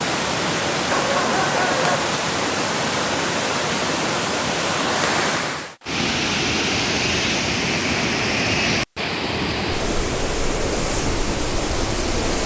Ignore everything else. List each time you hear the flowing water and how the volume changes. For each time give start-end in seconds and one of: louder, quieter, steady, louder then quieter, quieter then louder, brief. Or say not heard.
0.0-12.4 steady.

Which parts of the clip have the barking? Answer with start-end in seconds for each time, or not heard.
0.9-2.1.